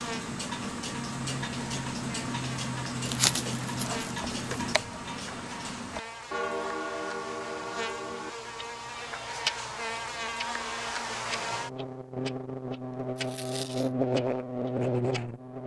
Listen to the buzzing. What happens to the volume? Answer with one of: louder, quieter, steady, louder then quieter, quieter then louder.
louder.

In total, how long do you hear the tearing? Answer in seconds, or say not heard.
2 s.